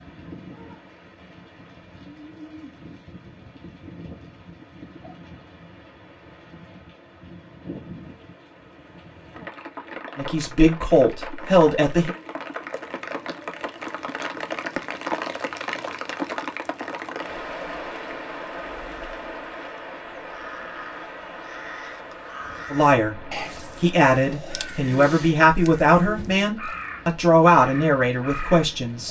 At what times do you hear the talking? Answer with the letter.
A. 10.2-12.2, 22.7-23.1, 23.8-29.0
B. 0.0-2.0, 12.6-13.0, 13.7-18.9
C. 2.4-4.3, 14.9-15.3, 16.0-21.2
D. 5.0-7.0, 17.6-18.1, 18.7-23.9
A.